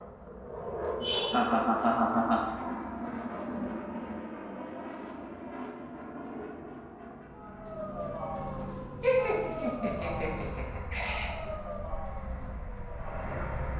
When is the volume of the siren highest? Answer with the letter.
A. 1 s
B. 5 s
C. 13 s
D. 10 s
D.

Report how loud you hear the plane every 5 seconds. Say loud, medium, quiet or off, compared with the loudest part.
loud, medium, medium.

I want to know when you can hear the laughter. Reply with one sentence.
The laughter can be heard from 1.0 to 2.4 s and from 9.0 to 11.3 s.